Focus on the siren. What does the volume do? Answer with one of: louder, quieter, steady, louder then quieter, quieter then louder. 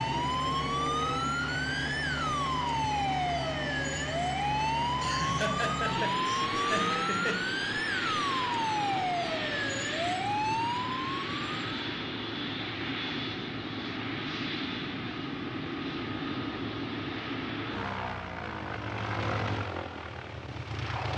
steady.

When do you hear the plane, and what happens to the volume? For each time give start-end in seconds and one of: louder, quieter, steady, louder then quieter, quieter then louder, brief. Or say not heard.
0.0-21.1 steady.